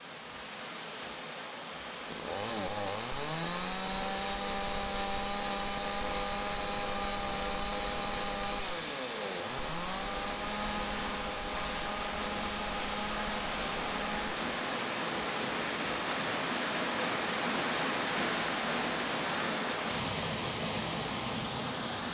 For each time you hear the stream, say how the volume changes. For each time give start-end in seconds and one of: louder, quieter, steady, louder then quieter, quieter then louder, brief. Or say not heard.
0.0-22.0 louder.